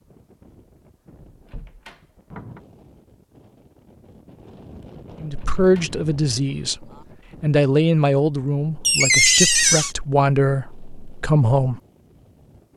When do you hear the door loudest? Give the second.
9 s.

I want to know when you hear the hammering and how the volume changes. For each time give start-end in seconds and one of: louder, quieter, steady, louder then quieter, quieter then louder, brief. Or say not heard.
not heard.